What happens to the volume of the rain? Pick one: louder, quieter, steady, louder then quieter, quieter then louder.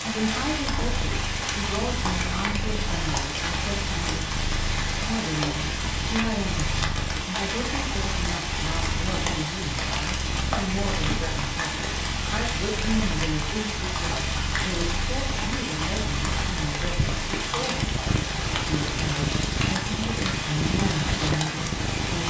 steady.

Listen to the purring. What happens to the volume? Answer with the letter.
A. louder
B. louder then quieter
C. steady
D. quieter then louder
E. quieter
A.